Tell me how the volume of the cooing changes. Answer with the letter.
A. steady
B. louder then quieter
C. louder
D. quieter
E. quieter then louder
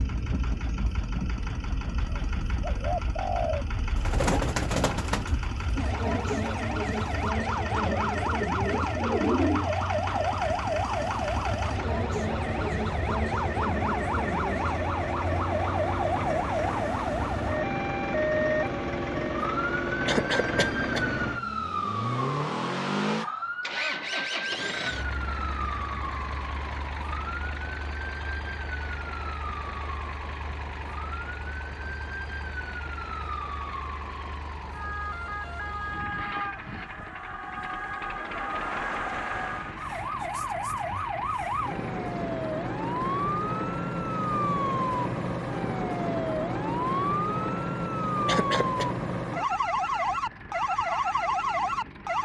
E.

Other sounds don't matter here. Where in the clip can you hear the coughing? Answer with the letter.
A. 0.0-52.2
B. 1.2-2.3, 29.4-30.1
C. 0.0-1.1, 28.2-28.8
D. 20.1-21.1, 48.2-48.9
D.